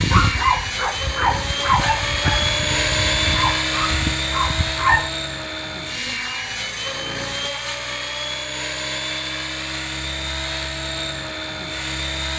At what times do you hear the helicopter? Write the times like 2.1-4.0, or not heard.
0.0-12.3.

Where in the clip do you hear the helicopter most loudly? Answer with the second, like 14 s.
3 s.